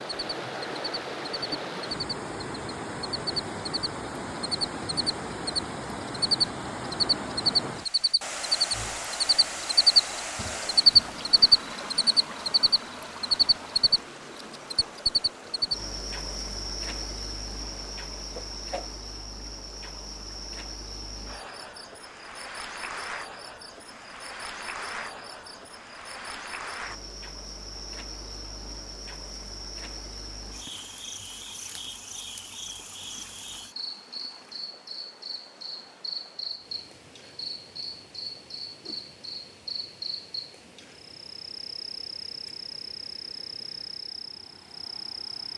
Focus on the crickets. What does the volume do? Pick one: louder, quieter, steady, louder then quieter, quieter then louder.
quieter.